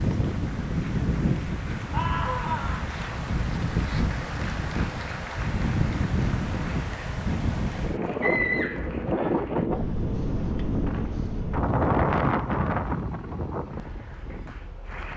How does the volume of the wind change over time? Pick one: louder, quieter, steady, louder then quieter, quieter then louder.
steady.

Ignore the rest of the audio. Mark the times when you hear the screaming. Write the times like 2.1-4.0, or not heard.
1.9-2.8, 8.2-9.3.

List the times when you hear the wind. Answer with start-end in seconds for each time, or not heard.
0.0-15.1.